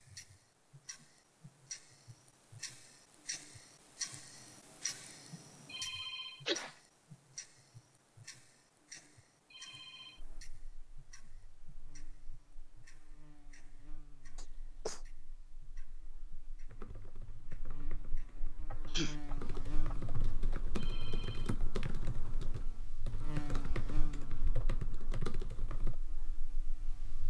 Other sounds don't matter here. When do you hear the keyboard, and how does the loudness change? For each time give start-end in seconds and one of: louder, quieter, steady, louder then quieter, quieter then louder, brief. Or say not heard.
16.6-26.0 louder.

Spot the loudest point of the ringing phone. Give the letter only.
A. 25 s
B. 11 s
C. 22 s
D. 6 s
D.